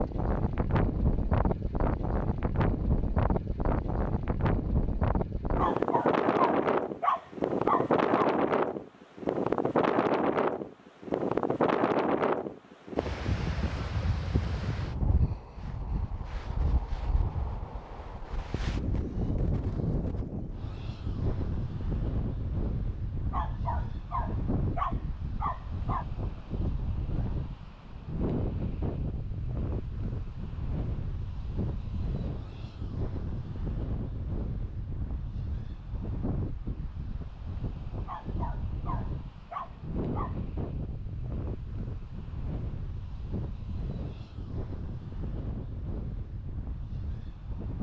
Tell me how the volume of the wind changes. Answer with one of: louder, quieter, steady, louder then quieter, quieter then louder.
quieter.